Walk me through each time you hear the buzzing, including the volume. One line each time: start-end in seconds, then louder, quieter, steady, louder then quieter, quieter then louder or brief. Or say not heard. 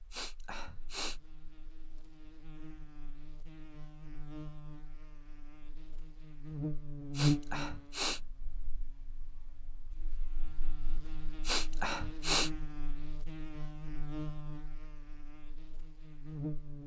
0.0-16.8 louder then quieter.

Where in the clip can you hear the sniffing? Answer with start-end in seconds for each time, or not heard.
0.1-1.2, 7.1-8.2, 11.4-12.5.